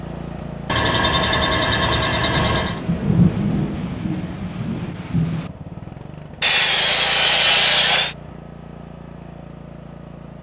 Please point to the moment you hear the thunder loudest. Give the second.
3 s.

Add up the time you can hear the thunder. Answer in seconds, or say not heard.
3 s.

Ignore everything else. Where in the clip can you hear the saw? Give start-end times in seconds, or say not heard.
0.7-2.8, 6.4-8.2.